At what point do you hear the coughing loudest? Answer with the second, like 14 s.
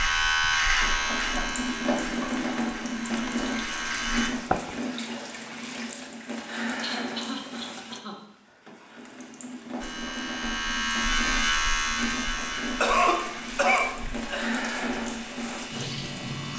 13 s.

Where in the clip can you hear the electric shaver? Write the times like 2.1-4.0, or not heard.
0.0-4.3, 9.8-16.5.